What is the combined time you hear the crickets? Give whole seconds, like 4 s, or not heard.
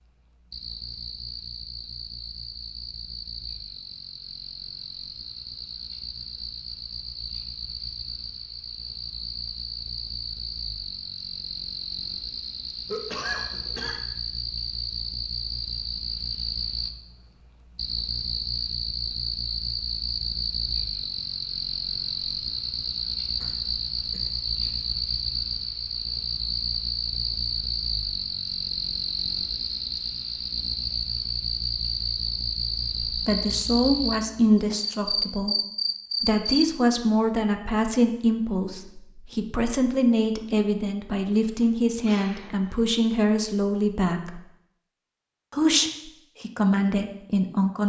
37 s.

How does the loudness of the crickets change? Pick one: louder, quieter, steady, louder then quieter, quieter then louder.
louder.